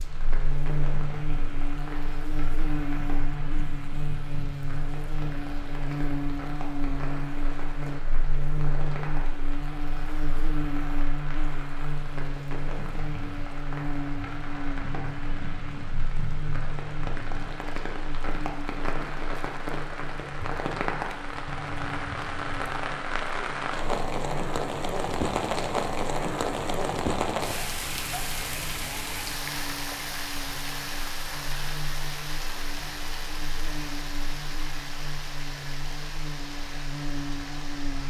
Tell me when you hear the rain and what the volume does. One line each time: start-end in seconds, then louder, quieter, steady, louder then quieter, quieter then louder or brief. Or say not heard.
0.0-38.0 louder then quieter.